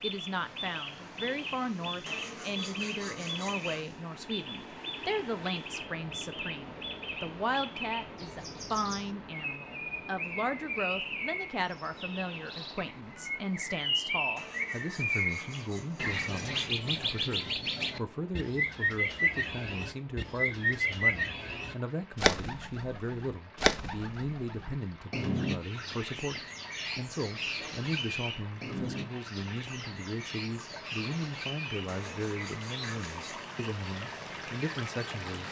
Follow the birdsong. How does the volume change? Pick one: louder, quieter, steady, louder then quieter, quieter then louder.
louder then quieter.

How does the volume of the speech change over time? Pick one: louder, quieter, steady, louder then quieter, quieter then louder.
steady.